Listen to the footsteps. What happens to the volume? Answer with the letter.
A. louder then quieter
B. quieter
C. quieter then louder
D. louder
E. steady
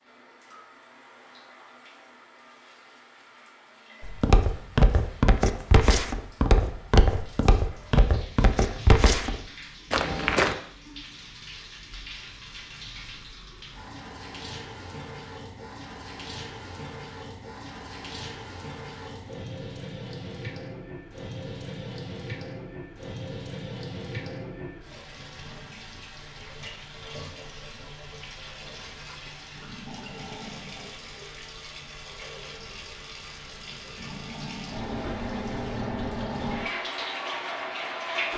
E.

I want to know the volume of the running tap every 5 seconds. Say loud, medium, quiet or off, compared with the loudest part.
quiet, quiet, medium, medium, medium, medium, medium, loud.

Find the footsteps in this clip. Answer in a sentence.
You can hear the footsteps from 4.0 to 10.6 s.